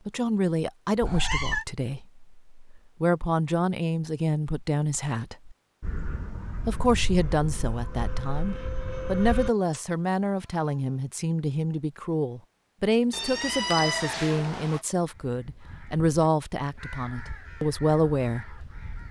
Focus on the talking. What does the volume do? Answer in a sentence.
The loudness of the talking stays about the same.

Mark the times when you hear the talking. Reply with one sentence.
You can hear the talking from 0.1 to 5.5 s and from 6.7 to 18.6 s.